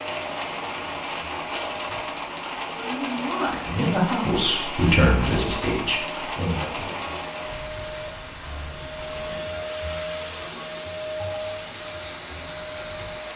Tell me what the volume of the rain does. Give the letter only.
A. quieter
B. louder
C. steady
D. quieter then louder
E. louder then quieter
A.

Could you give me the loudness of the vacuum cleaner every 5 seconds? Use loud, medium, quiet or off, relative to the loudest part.
medium, loud, loud.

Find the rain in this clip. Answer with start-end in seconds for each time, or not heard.
0.0-13.3.